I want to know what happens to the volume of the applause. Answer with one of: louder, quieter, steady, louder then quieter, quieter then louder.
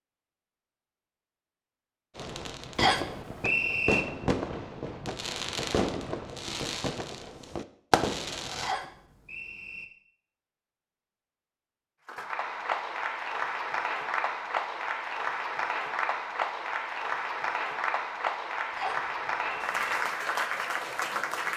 steady.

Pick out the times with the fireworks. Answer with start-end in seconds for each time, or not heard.
2.1-8.8.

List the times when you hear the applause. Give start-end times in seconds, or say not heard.
12.1-21.5.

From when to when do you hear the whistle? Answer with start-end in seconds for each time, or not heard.
2.8-4.0, 8.6-9.8, 18.8-19.9.